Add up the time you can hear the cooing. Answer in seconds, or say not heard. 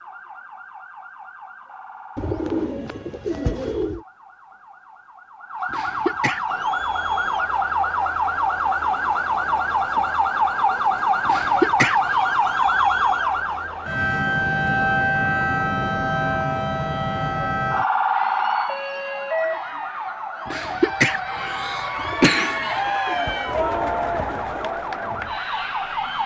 5 s.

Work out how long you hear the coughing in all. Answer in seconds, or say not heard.
4 s.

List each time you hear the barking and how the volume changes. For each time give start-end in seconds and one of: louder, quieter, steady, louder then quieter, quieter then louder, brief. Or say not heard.
not heard.